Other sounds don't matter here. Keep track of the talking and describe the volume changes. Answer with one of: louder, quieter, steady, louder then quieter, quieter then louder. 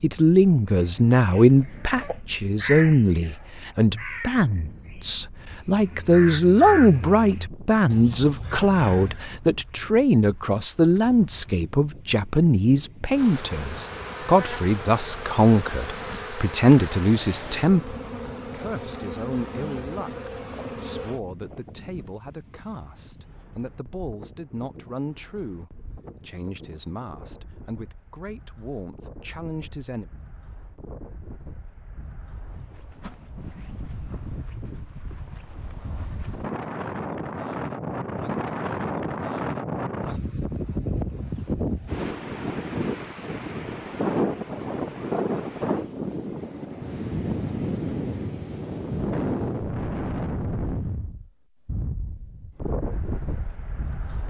quieter.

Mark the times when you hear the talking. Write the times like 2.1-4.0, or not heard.
0.0-30.1.